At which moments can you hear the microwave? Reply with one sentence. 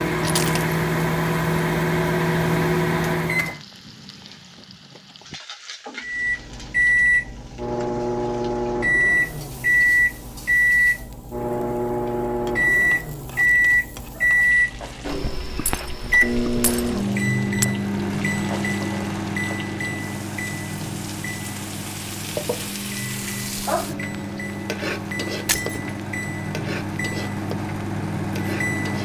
The microwave can be heard from 0.0 to 3.6 s and from 6.0 to 29.0 s.